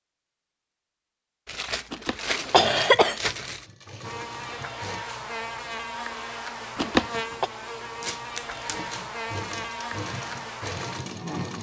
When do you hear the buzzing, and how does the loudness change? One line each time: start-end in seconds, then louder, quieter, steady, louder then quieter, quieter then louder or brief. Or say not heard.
4.0-11.5 steady.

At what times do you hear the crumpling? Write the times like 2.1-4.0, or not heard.
1.4-3.6, 8.0-8.9.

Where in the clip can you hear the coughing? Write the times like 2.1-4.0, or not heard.
1.9-3.2, 6.8-7.5.